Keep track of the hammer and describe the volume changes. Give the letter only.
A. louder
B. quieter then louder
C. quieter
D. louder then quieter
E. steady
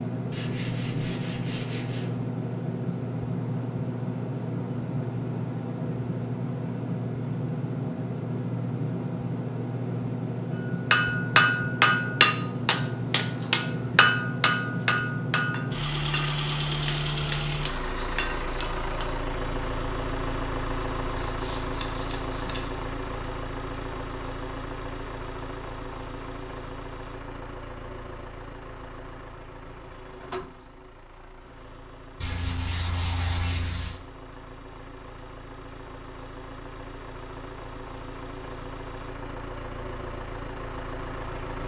C.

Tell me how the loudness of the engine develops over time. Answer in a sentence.
The loudness of the engine goes down.